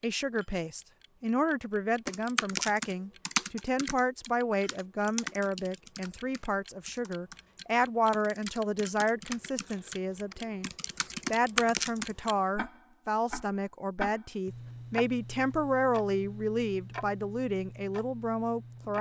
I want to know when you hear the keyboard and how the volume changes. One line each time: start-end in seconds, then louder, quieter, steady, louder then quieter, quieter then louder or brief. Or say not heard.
2.0-12.2 quieter then louder.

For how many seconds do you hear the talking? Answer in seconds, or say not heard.
18 s.